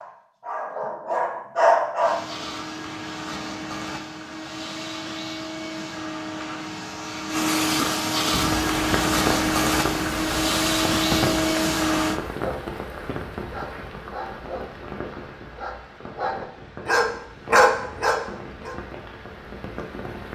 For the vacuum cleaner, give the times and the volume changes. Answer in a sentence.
You can hear the vacuum cleaner from 2.0 to 12.2 s, getting louder.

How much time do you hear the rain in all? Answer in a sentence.
The rain can be heard for 12 seconds in total.